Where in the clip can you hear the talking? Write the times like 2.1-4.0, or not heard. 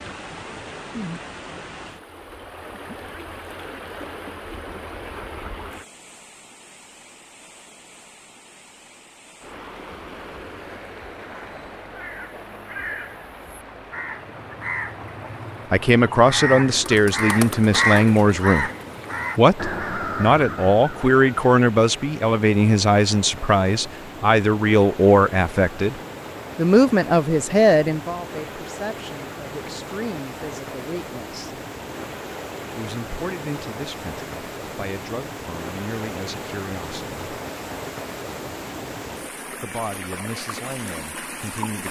15.7-18.7, 19.4-25.9, 26.6-31.6, 32.8-37.1, 39.6-41.8.